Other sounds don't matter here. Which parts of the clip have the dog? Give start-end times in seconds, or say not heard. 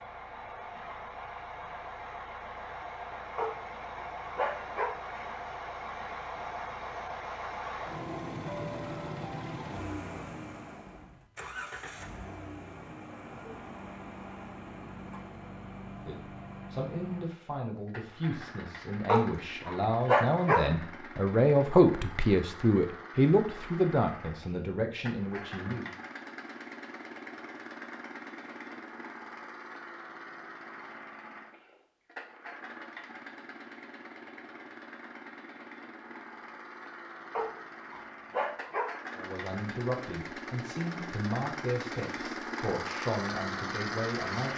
3.4-5.0, 19.1-20.7, 37.3-39.0.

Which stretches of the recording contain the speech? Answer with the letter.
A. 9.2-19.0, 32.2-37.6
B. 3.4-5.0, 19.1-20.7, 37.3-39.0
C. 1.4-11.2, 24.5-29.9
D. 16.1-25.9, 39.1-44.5
D.